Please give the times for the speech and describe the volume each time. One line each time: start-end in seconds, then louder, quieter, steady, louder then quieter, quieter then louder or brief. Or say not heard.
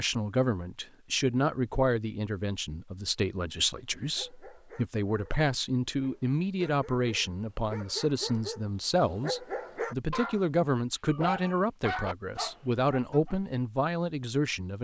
0.0-14.7 steady.